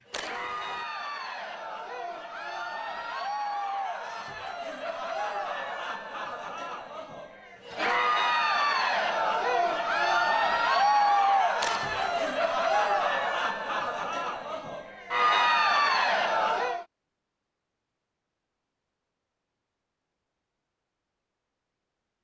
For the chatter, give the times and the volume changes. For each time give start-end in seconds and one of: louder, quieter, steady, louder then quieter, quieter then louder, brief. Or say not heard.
0.0-16.9 louder.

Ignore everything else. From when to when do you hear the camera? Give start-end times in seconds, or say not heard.
0.1-0.8, 11.6-12.3.